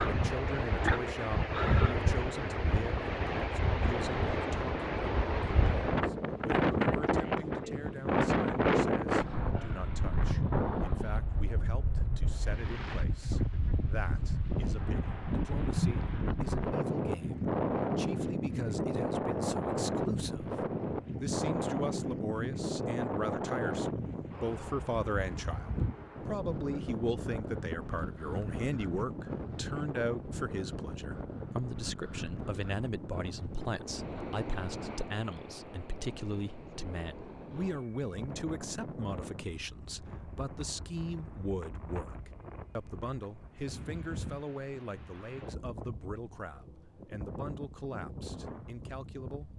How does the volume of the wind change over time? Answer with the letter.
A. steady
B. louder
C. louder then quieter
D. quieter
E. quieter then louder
D.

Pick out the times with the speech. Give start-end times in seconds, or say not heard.
0.1-49.5.